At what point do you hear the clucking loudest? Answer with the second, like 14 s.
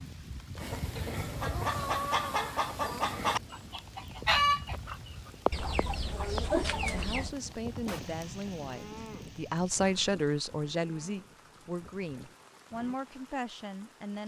4 s.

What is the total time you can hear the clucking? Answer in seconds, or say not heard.
7 s.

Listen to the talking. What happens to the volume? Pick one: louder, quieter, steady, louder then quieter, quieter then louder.
louder then quieter.